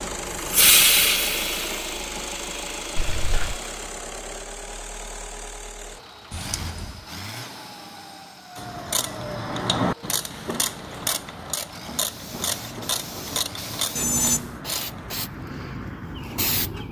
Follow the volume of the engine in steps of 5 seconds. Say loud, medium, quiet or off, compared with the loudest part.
loud, medium, medium, off.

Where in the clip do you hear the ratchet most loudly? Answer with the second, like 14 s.
10 s.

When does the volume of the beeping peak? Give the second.
14 s.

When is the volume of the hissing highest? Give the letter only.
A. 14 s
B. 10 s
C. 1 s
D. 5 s
C.